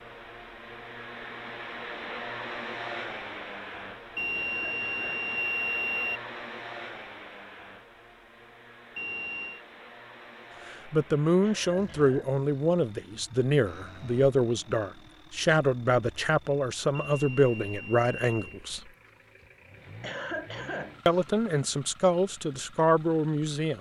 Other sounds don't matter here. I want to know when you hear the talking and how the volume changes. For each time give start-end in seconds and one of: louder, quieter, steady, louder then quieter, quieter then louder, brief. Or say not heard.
10.7-18.8 steady
21.1-23.7 brief.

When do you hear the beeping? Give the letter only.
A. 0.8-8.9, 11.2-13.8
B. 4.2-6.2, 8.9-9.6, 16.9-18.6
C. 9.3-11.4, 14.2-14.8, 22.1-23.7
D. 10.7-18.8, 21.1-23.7
B.